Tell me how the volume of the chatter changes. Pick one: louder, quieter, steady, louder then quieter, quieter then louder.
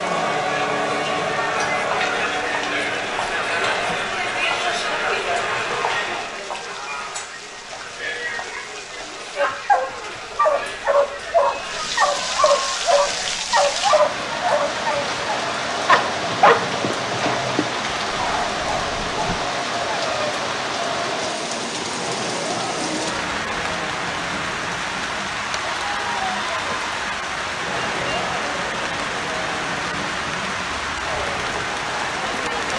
quieter.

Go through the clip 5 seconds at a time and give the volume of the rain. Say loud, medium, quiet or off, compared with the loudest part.
quiet, quiet, loud, loud, loud, loud, loud.